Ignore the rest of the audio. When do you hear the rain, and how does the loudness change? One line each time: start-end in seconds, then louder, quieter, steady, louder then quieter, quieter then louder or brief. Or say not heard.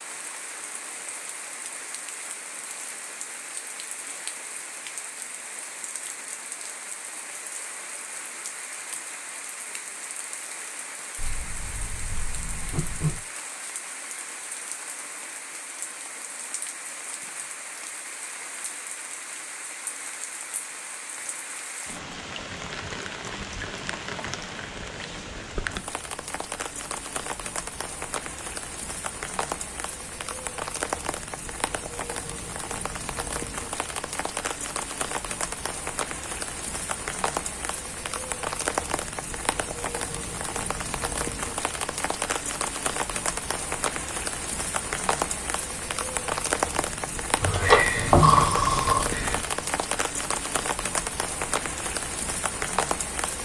0.0-53.4 louder.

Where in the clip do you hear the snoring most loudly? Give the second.
48 s.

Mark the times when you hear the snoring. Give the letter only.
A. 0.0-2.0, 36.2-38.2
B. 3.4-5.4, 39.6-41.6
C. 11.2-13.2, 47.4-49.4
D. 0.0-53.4
C.